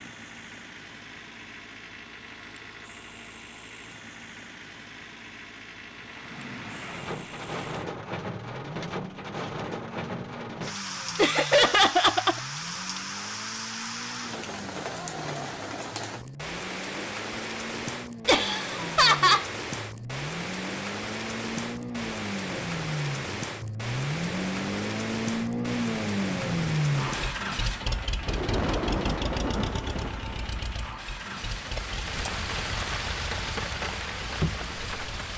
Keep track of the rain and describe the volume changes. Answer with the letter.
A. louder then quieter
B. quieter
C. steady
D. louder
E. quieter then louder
C.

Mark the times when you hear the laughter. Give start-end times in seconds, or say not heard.
11.2-12.4, 18.2-19.4.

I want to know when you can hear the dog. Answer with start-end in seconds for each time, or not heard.
not heard.